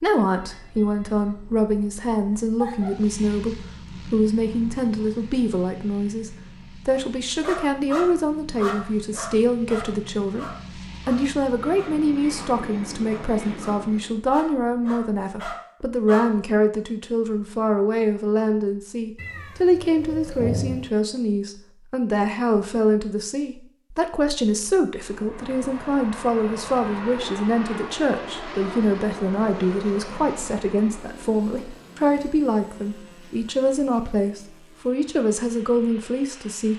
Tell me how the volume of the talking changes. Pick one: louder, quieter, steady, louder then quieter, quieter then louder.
steady.